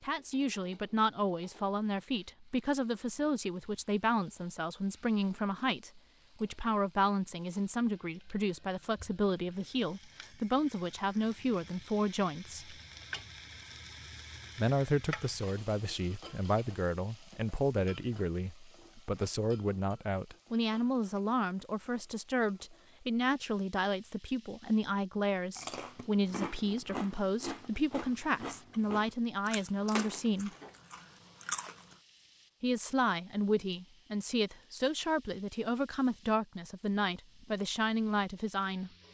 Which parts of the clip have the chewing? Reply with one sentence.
The chewing can be heard from 25.6 to 31.9 s.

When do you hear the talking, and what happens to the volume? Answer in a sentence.
The talking can be heard from 0.0 to 12.8 s, at a steady volume; from 14.6 to 30.5 s, at a steady volume; and from 32.6 to 38.9 s, at a steady volume.